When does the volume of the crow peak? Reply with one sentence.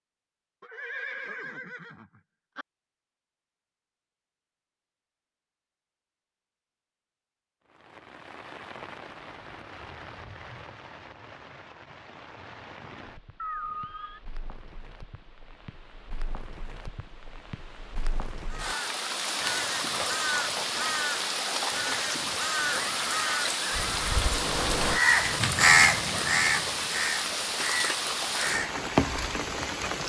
The loudest moment of the crow is at 26 seconds.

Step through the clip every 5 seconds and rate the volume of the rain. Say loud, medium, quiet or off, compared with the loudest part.
off, quiet, quiet, medium, loud, loud.